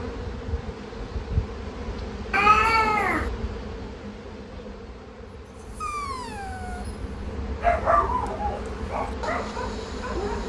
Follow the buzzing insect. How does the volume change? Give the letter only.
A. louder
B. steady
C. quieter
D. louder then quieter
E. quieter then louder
E.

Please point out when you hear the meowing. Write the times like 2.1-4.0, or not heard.
2.3-3.3.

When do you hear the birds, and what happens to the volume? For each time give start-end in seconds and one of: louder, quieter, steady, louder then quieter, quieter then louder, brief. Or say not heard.
not heard.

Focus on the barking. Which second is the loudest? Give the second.
8 s.